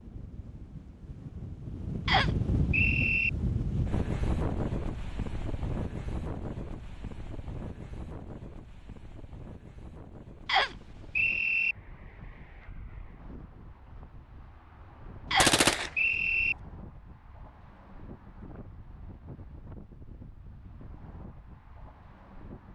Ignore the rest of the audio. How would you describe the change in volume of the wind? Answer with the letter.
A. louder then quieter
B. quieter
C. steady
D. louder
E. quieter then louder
B.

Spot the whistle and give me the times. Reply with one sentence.
You can hear the whistle from 2.0 to 3.3 s, from 10.4 to 11.8 s and from 15.3 to 16.6 s.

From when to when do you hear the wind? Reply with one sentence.
You can hear the wind from 0.0 to 22.7 s.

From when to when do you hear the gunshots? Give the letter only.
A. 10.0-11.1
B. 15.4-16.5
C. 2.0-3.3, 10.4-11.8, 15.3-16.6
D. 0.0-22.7
B.